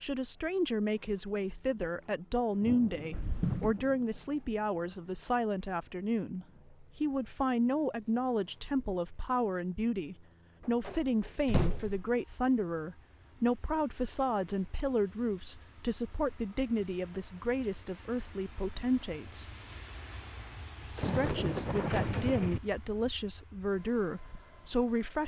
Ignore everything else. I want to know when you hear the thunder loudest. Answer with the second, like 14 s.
22 s.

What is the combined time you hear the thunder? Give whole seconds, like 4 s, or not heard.
4 s.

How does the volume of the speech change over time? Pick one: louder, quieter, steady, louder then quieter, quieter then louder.
steady.